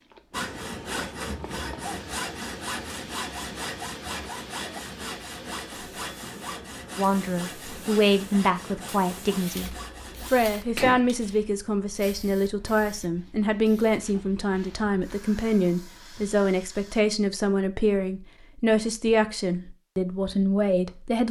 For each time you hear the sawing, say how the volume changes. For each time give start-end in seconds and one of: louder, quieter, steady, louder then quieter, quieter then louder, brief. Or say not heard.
0.3-10.3 quieter.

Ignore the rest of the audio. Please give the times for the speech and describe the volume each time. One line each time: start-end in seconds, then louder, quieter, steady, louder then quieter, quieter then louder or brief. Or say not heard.
7.0-21.2 steady.